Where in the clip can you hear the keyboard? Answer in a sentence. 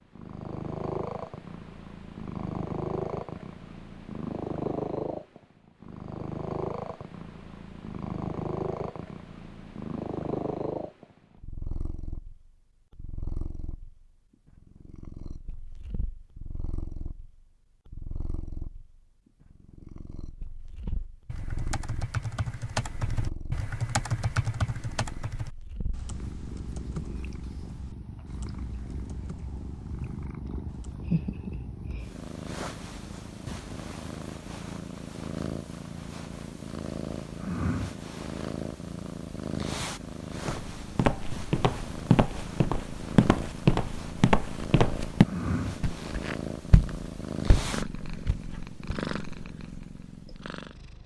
You can hear the keyboard from 20.9 to 30.9 s.